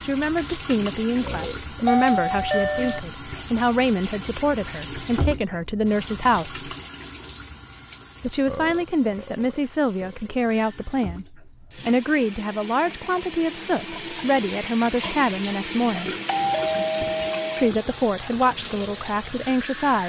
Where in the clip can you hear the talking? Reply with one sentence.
The talking can be heard from 0.0 to 6.7 s, from 8.2 to 16.1 s and from 17.6 to 20.0 s.